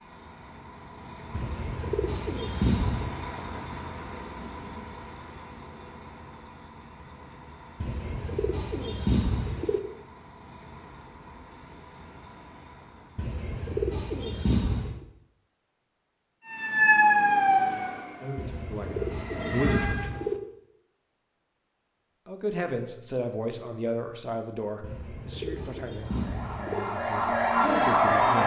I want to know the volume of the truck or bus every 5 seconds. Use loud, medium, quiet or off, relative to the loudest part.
loud, medium, medium, off, off, off.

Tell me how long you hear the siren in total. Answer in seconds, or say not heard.
6 s.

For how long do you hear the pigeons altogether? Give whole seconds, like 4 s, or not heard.
10 s.